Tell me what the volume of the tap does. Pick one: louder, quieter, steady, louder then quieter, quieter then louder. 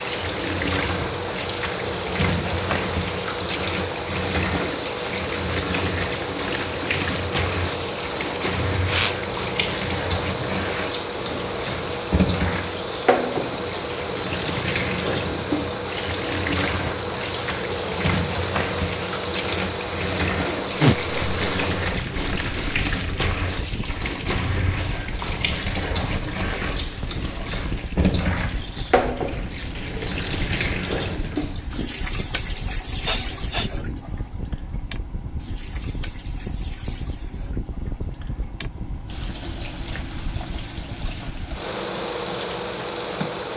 quieter.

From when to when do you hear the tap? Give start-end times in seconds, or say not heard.
0.0-43.5.